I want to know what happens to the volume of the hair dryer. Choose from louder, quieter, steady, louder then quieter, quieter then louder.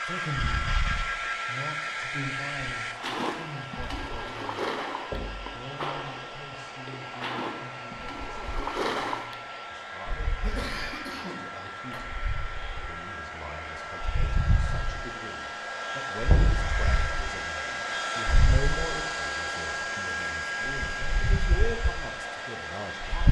quieter then louder.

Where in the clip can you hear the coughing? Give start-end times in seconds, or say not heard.
10.4-12.0.